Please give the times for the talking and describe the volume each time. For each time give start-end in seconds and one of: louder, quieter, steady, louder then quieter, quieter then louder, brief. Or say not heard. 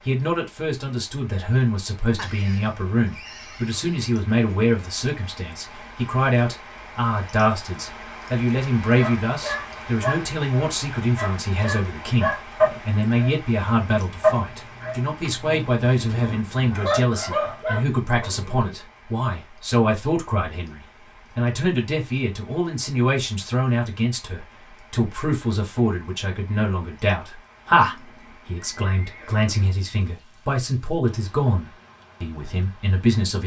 0.1-33.4 steady.